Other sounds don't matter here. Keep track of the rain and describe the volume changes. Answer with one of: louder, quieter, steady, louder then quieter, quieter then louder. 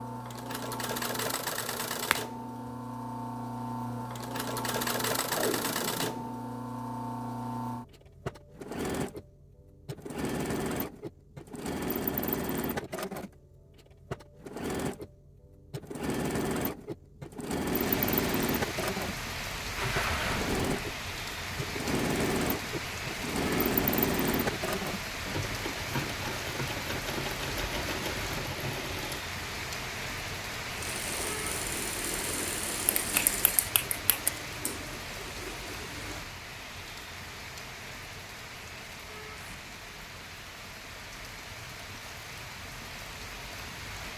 quieter.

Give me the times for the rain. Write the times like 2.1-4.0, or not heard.
17.6-44.1.